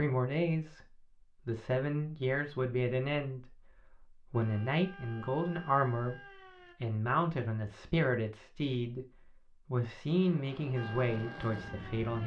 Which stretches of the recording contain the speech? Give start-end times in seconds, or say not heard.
0.0-0.8, 1.4-6.2, 6.8-9.1, 9.7-12.2.